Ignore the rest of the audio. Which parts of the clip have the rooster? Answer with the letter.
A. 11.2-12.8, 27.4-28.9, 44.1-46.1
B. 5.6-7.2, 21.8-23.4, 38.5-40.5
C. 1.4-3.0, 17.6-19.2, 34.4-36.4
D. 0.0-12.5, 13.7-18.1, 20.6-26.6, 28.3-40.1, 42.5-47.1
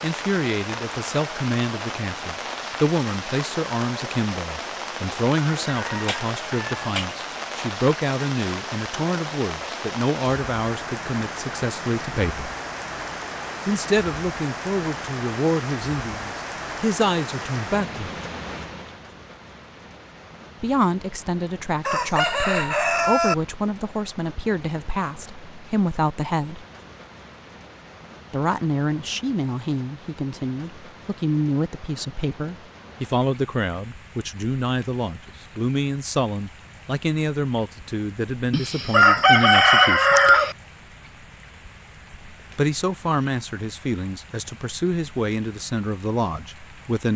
B.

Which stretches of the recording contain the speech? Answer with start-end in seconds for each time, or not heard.
0.0-12.5, 13.7-18.1, 20.6-26.6, 28.3-40.1, 42.5-47.1.